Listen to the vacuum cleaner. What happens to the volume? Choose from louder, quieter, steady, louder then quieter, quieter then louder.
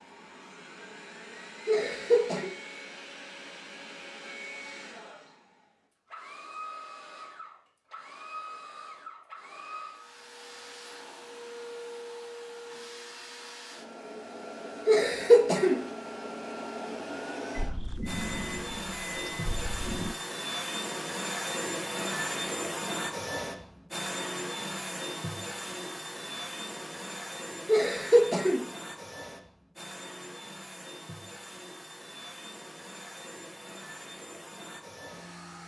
louder then quieter.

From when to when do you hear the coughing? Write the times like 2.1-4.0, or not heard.
1.6-2.5, 14.8-15.8, 27.6-28.6.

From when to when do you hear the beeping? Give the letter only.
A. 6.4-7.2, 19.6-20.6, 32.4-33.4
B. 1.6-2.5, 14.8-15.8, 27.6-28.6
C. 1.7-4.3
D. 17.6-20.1
D.